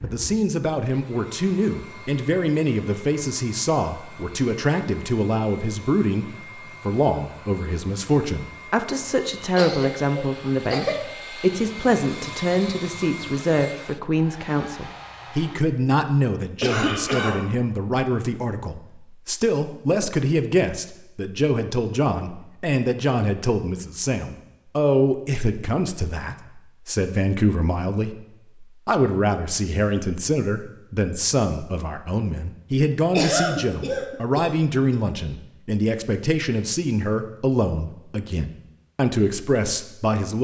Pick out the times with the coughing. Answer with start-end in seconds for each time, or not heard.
9.4-10.9, 16.6-17.4, 33.1-35.0.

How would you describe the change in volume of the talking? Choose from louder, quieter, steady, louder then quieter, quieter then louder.
steady.